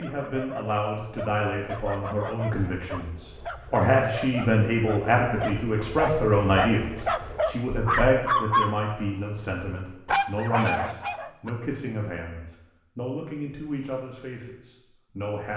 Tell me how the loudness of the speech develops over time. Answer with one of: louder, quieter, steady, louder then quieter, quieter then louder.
louder then quieter.